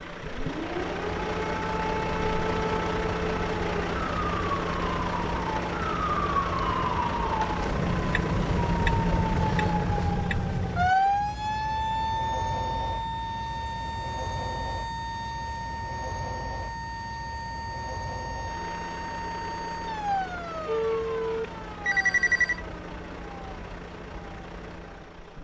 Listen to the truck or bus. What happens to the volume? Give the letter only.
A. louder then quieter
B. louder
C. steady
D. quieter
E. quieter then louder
D.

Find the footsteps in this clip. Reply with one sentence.
You can't hear the footsteps here.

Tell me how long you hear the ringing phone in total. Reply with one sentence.
You can hear the ringing phone for 2 seconds altogether.